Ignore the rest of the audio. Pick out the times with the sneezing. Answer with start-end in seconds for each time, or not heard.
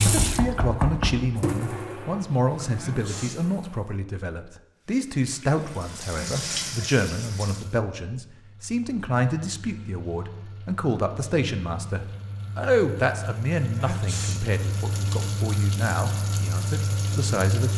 2.8-3.5, 6.1-6.8, 13.8-14.5.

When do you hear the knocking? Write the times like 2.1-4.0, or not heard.
0.1-1.4.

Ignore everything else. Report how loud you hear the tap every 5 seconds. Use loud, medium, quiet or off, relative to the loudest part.
loud, medium, medium, loud.